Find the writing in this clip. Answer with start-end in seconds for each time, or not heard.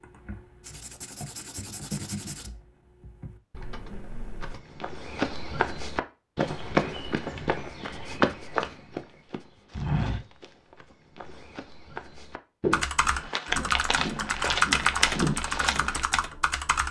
0.6-2.5.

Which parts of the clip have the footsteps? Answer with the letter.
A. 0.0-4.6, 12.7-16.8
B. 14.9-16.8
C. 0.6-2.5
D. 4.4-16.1
D.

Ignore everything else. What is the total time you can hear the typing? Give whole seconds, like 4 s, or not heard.
9 s.